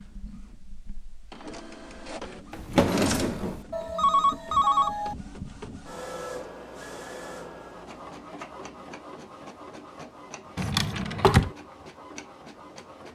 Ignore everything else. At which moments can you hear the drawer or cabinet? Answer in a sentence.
You can hear the drawer or cabinet from 2.5 to 3.6 s and from 10.6 to 11.5 s.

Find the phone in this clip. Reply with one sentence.
You can hear the phone from 3.7 to 5.2 s.